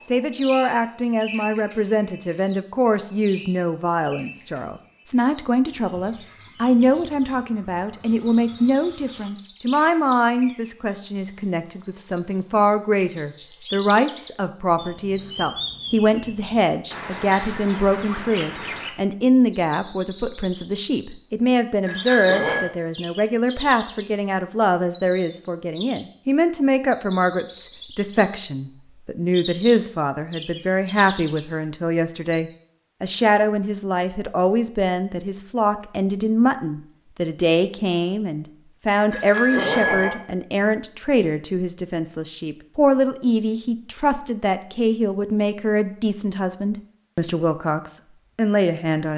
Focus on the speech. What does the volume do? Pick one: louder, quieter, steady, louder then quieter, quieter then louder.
steady.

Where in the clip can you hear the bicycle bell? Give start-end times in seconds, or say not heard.
21.9-22.6, 39.1-40.1.